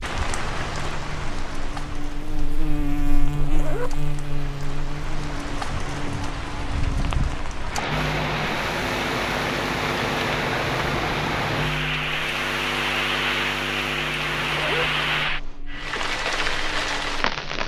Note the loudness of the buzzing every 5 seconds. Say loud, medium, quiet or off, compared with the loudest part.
loud, loud, loud, medium.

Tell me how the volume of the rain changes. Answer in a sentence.
The loudness of the rain goes up.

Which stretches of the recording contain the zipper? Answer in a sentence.
The zipper can be heard from 3.3 to 4.0 s and from 14.3 to 14.9 s.